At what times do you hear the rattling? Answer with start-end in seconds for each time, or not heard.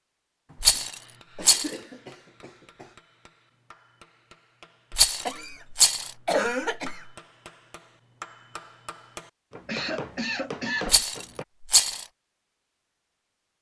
0.6-1.7, 4.9-6.1, 10.8-12.1.